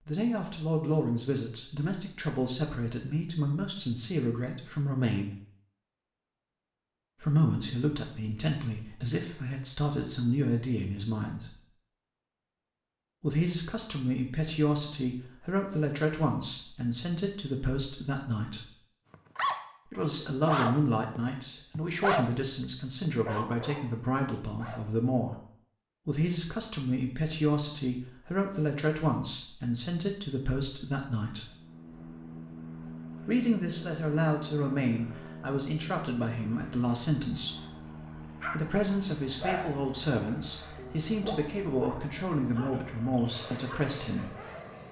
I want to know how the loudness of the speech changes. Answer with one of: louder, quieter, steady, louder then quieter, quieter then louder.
steady.